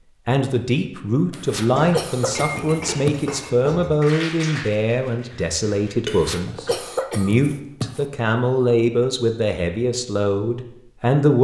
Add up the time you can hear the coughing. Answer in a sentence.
The coughing can be heard for 4 seconds in total.